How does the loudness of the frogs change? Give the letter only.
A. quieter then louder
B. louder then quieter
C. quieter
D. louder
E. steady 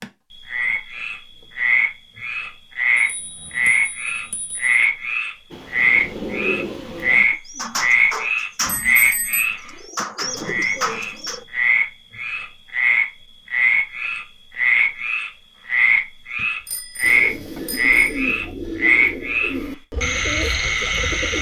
E.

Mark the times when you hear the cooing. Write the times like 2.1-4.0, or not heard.
5.5-11.4, 17.0-21.3.